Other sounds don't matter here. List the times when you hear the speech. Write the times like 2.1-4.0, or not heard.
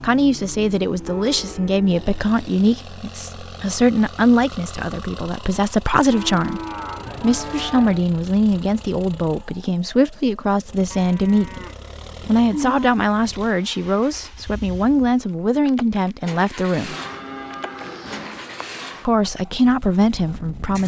0.0-6.6, 7.2-11.7, 12.2-16.9, 19.1-20.8.